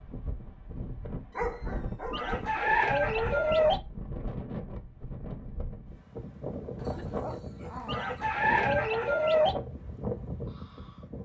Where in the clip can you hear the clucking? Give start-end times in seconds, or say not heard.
2.1-3.8, 7.8-9.6.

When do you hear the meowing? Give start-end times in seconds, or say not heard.
not heard.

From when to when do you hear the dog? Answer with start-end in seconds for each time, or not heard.
1.3-2.9, 6.8-8.2.